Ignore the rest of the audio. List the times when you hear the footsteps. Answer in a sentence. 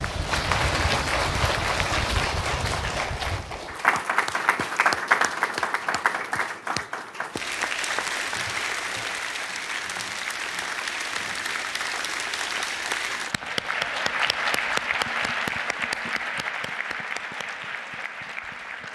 The footsteps can be heard from 0.0 to 3.9 s.